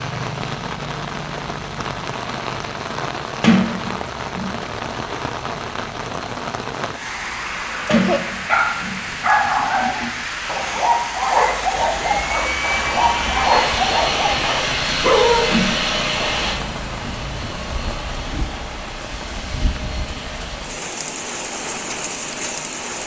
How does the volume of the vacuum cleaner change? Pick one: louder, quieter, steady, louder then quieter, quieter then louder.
quieter.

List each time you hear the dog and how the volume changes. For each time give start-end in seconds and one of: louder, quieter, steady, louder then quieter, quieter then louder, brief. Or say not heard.
7.8-15.6 steady.